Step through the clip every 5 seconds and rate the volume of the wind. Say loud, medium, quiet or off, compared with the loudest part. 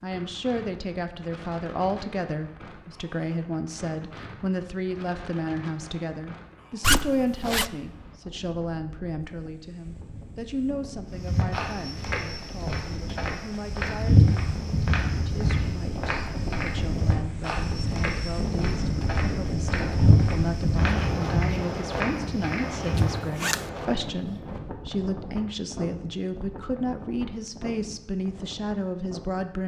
quiet, quiet, medium, loud, loud, medium.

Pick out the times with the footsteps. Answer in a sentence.
The footsteps can be heard from 11.2 to 23.1 s.